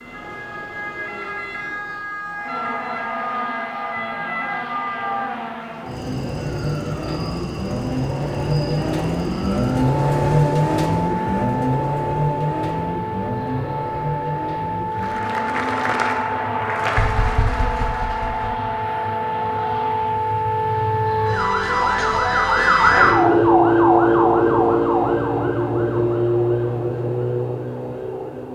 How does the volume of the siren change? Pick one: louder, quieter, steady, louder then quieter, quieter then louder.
louder.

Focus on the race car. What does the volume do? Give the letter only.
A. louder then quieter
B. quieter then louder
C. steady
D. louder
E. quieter
A.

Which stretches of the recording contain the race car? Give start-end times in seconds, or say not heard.
2.3-20.2.